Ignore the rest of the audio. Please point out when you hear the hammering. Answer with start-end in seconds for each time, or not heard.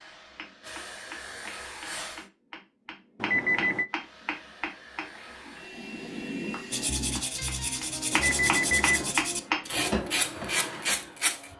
0.3-11.1.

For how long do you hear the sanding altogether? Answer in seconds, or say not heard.
5 s.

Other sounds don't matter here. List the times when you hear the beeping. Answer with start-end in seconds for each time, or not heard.
3.2-3.9, 8.1-9.2.